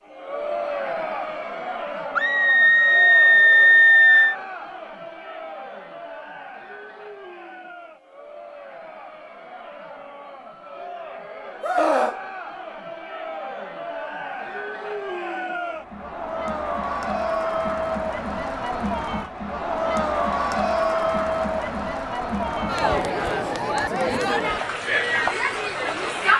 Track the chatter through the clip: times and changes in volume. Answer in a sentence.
The chatter can be heard from 0.1 to 26.3 s, getting quieter then louder.